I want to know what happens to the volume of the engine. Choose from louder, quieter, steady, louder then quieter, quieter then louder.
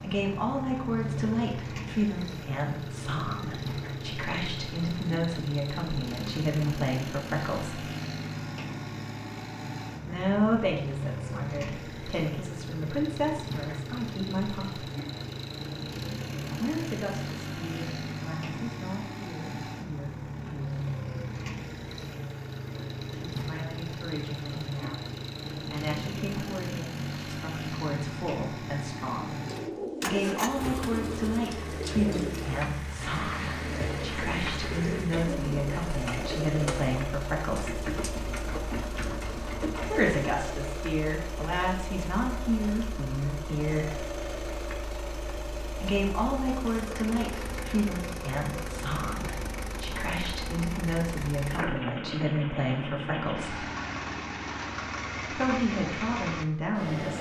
steady.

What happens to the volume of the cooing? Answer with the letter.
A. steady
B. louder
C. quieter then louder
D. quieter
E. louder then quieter
A.